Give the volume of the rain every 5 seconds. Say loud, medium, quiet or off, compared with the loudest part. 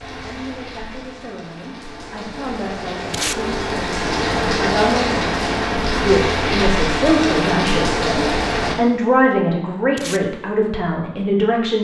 medium, loud, off.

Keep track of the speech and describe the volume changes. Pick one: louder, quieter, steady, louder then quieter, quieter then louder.
louder.